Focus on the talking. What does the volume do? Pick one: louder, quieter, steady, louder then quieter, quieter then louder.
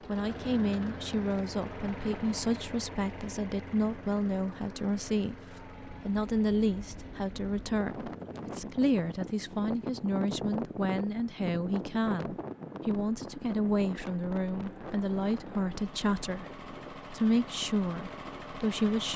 steady.